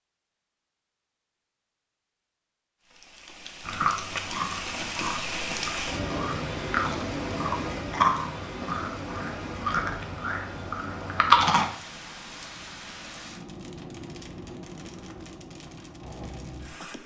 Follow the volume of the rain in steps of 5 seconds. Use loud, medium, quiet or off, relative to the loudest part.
loud, loud, medium, medium.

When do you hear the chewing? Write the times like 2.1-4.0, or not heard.
3.6-11.7.